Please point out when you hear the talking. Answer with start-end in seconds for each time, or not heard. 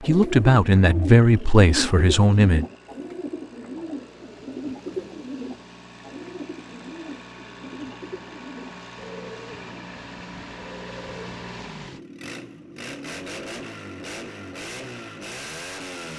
0.0-2.6.